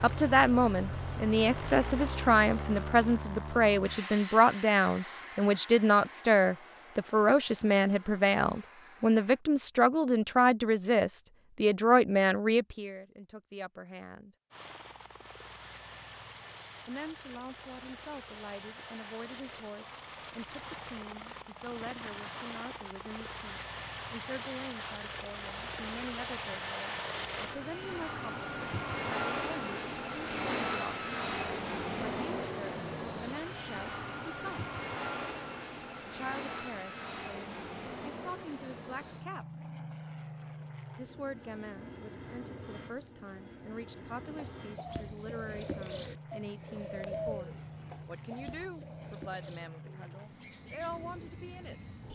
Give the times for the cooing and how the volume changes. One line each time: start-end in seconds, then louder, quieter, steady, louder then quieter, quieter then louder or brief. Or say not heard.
44.0-52.0 quieter.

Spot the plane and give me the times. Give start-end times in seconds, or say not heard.
0.0-9.4, 14.5-52.0.